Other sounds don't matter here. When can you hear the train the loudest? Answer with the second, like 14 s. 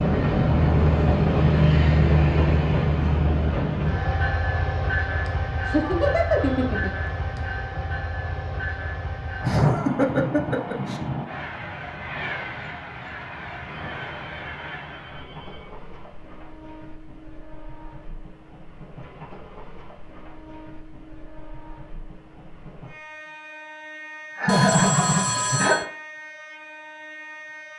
2 s.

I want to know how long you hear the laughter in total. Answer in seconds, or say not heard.
5 s.